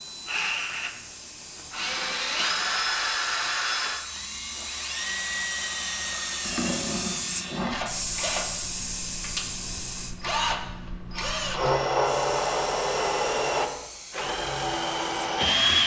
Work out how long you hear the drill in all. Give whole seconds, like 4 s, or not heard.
16 s.